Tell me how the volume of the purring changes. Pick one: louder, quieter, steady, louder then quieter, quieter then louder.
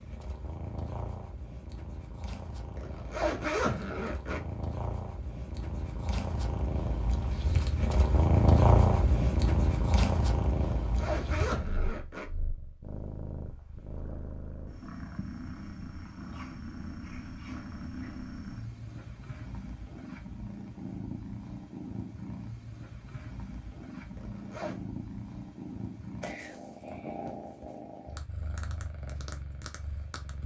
louder then quieter.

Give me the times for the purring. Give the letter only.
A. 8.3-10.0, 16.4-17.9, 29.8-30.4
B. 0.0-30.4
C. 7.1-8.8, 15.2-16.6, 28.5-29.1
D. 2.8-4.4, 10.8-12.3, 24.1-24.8
B.